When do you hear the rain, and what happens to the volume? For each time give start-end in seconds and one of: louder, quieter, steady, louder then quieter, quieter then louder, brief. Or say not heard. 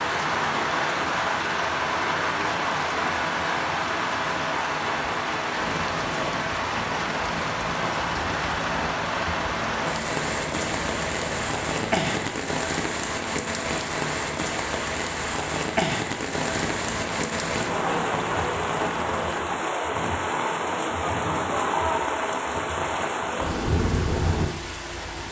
0.0-25.2 steady.